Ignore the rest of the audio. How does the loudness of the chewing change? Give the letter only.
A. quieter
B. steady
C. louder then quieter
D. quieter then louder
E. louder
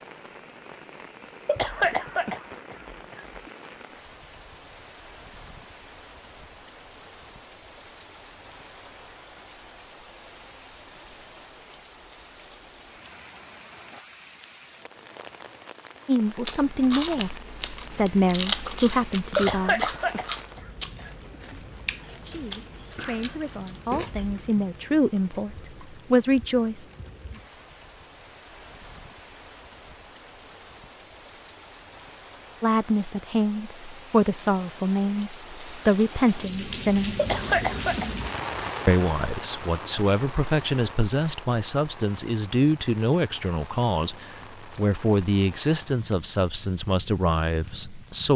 C.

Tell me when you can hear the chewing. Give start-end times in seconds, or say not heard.
16.4-24.4.